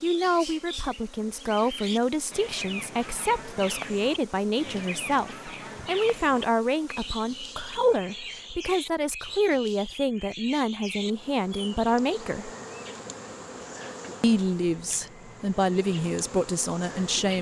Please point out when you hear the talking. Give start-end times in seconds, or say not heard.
0.0-12.5, 14.2-17.3.